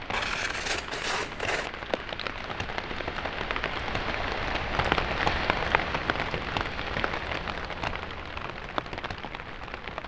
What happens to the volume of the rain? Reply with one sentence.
The volume of the rain goes up, then down.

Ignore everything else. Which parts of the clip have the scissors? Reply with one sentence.
The scissors can be heard from 0.1 to 1.7 s.